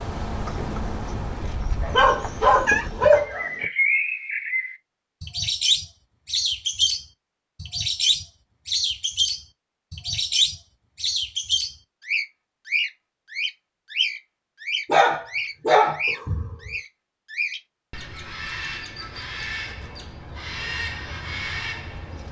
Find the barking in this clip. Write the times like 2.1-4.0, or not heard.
1.8-3.6, 14.8-16.7.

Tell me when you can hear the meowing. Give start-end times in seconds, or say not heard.
2.2-2.9.